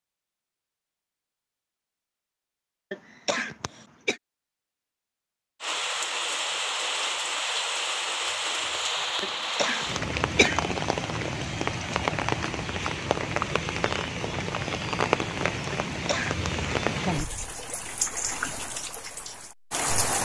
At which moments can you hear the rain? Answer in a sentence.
The rain can be heard from 5.6 to 20.2 s.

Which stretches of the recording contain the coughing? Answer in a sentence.
The coughing can be heard from 2.9 to 4.2 s, from 9.2 to 10.6 s and from 15.7 to 16.4 s.